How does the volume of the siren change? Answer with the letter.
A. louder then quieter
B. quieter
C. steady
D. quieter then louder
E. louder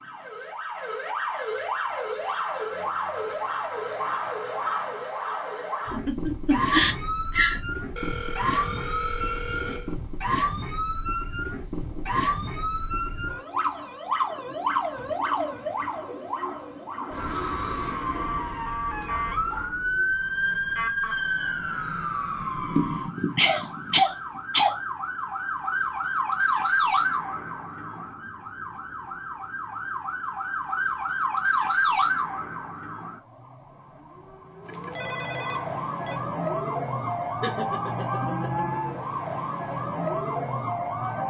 C.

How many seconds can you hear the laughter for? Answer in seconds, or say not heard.
5 s.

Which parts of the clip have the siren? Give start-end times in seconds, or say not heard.
0.0-41.2.